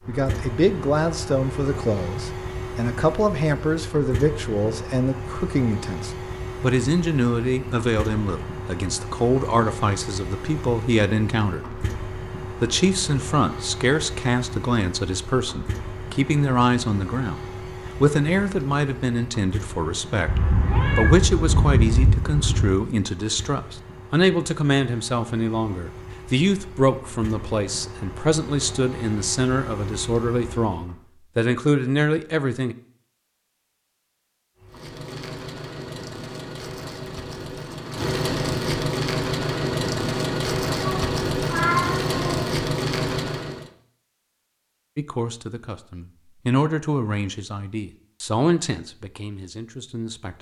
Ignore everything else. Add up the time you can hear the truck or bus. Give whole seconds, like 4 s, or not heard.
40 s.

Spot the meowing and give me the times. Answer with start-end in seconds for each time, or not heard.
20.2-22.8, 40.8-42.5.